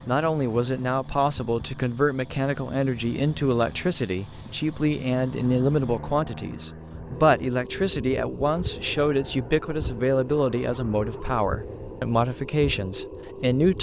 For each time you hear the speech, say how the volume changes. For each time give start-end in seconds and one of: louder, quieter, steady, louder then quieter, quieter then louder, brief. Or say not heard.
0.1-13.7 steady.